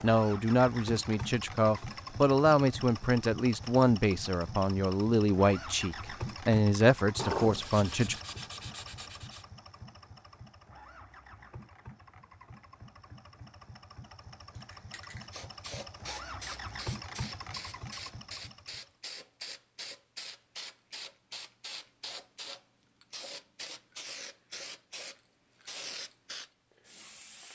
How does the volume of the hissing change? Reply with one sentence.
The volume of the hissing stays about the same.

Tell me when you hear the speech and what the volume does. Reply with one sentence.
The speech can be heard from 0.0 to 8.2 s, at a steady volume.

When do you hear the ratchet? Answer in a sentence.
The ratchet can't be heard in this clip.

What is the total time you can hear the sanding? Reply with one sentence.
The sanding can be heard for 2 seconds in total.